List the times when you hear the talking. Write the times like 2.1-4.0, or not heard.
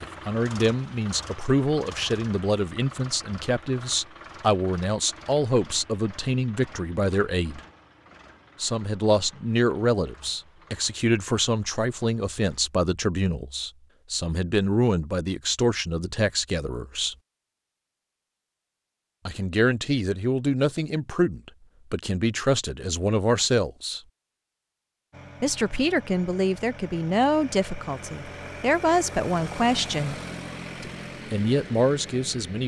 0.0-7.6, 8.6-17.1, 19.2-24.0, 25.4-30.2, 30.8-32.6.